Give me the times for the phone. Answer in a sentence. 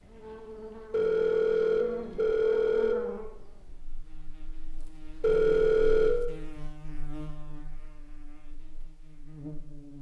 You can hear the phone from 0.9 to 3.0 s and from 5.2 to 6.2 s.